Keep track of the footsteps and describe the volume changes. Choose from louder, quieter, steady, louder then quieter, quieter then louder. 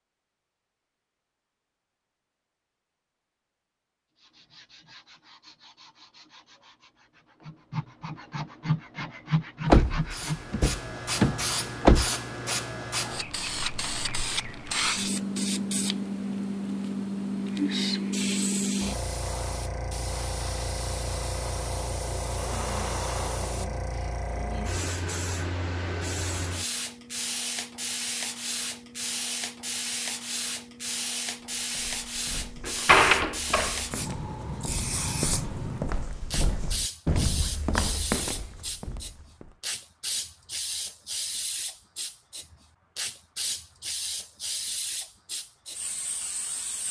louder.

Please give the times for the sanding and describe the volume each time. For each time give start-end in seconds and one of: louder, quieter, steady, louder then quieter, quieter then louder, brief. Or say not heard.
4.2-10.4 louder.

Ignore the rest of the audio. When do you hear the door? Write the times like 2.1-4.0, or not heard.
9.7-12.1, 32.6-33.8.